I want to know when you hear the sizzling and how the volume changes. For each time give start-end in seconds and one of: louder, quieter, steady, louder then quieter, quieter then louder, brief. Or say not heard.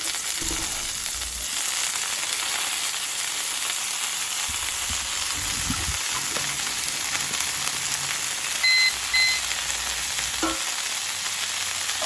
0.0-12.0 steady.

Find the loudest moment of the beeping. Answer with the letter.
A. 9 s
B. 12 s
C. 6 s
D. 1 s
A.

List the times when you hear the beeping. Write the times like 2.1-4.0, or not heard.
0.4-1.5, 4.5-6.0, 8.6-9.4.